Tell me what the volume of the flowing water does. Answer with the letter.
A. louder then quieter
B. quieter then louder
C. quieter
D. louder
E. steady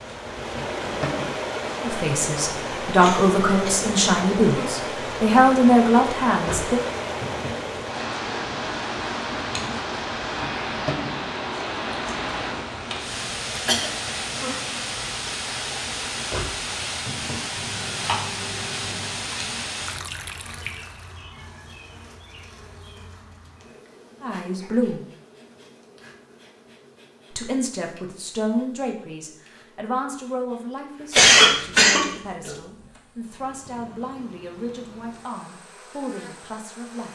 E.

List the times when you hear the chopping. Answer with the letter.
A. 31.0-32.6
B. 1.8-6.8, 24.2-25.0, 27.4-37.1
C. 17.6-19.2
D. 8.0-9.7
C.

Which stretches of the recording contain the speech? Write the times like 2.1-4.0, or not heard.
1.8-6.8, 24.2-25.0, 27.4-37.1.